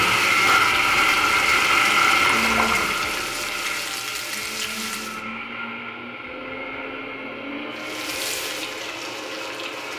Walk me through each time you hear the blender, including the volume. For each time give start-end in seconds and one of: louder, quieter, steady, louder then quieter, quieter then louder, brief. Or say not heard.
0.0-9.9 quieter.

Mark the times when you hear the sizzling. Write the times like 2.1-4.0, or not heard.
0.0-5.2, 7.7-9.9.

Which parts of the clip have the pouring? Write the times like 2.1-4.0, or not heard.
2.2-3.0.